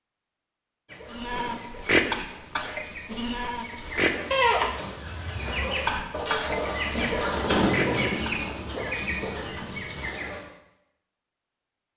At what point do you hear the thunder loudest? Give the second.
8 s.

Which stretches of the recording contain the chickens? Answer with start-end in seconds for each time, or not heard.
0.8-10.4.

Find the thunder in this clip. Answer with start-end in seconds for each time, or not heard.
7.5-10.1.